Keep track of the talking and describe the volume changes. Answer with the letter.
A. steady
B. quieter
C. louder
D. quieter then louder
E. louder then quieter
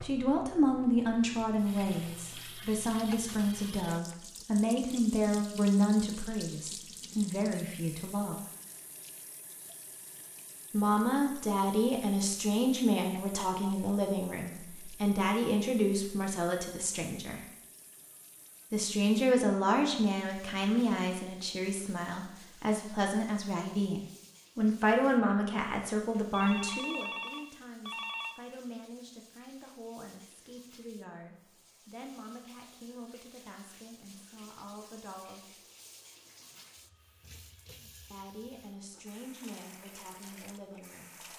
B.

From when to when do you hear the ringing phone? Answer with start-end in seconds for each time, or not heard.
26.3-28.4.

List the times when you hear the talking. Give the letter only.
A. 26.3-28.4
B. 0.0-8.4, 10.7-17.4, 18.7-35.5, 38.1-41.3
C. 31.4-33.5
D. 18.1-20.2
B.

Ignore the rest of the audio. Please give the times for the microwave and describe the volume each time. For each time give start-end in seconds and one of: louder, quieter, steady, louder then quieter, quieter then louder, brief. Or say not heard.
not heard.